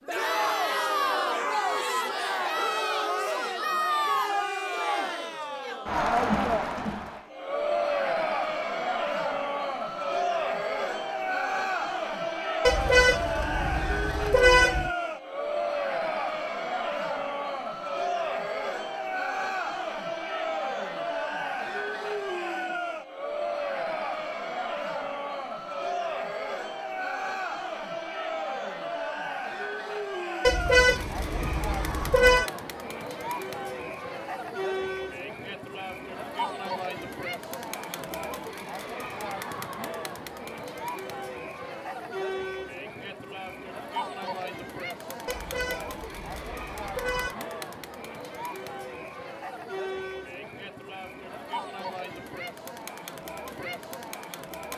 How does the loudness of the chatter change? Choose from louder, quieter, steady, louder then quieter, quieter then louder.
quieter.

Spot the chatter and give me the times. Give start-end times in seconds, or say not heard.
0.1-54.7.